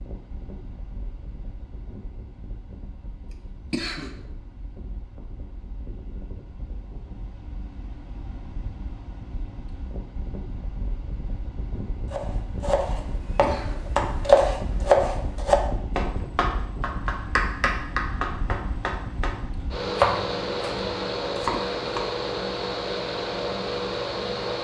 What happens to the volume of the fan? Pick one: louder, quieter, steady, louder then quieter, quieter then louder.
louder.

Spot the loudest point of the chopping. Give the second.
14 s.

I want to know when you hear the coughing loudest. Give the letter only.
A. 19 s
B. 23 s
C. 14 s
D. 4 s
D.